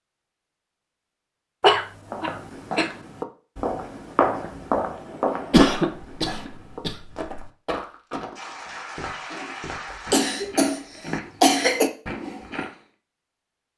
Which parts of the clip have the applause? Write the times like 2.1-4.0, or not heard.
8.3-10.2.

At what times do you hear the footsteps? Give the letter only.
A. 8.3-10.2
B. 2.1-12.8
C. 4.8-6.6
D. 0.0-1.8
B.